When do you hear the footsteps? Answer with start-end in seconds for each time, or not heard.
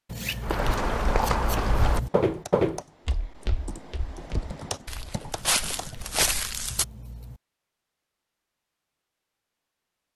0.4-6.8.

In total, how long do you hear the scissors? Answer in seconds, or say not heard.
4 s.